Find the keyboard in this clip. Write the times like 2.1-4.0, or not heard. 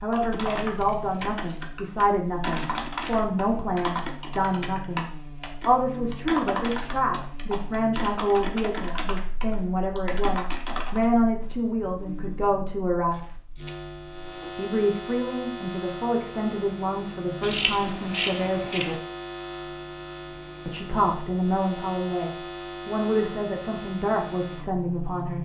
0.1-11.1.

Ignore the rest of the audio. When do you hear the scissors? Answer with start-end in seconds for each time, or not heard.
0.7-1.7, 13.1-14.6, 17.4-18.9.